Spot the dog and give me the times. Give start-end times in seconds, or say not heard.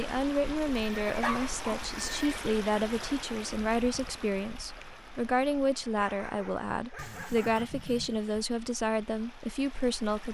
1.2-1.9, 6.0-7.7.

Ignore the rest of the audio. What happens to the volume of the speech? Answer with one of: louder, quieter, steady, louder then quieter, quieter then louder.
steady.